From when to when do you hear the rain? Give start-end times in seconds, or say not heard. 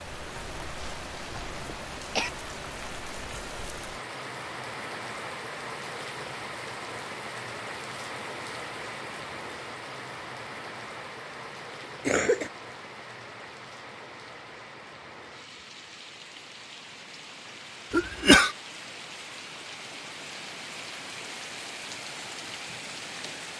0.0-23.5.